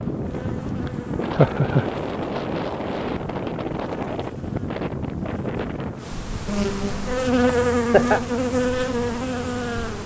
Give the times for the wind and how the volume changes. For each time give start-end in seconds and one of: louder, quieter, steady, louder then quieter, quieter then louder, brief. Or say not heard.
0.0-6.2 steady.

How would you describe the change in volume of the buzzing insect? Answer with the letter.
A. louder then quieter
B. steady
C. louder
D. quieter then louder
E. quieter
D.